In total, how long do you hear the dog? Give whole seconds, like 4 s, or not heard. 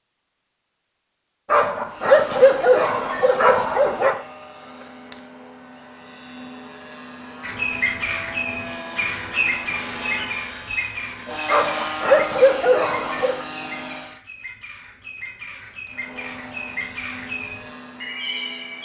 5 s.